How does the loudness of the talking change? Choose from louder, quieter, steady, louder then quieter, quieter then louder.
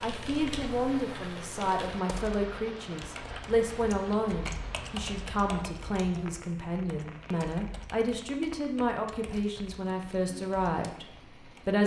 steady.